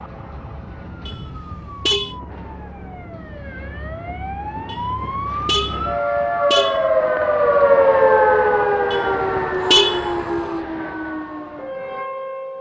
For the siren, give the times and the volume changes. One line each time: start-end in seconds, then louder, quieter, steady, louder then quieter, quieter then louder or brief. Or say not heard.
0.0-12.5 louder then quieter.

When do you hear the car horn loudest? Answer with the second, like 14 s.
10 s.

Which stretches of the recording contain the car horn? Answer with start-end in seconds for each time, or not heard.
1.1-2.1, 4.7-6.8, 8.9-10.4.